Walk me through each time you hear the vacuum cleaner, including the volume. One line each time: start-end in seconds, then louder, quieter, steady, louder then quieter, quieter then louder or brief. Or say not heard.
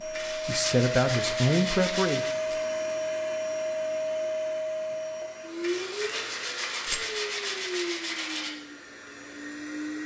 0.0-10.0 quieter.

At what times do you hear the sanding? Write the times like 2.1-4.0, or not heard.
0.1-2.4, 5.6-8.5.